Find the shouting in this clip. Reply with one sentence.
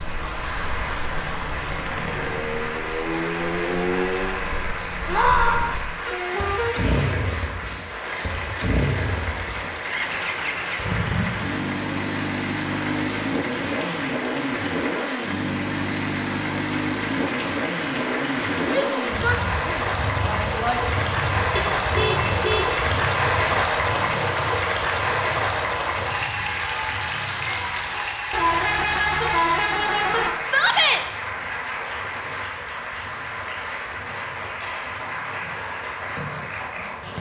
You can hear the shouting from 5.0 to 5.7 s, from 18.6 to 20.8 s and from 30.4 to 31.0 s.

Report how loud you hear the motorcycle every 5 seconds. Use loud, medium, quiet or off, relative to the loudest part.
loud, loud, loud, loud, medium, quiet, quiet, quiet.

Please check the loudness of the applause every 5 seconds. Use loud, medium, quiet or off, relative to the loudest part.
medium, medium, medium, medium, loud, loud, medium, medium.